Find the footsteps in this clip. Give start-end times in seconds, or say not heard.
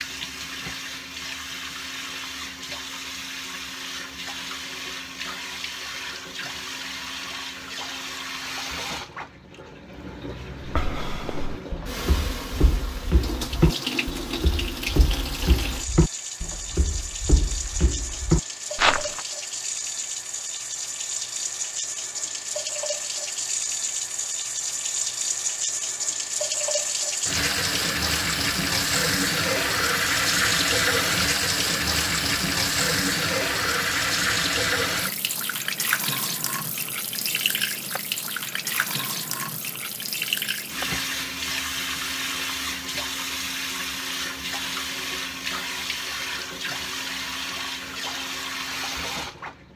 10.7-19.2.